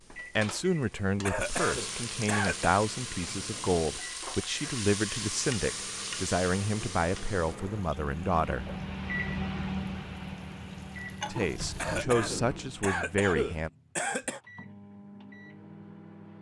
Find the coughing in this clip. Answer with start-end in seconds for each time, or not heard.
1.2-2.9, 11.8-14.4.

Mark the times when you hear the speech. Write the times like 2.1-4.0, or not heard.
0.3-8.7, 11.3-13.7.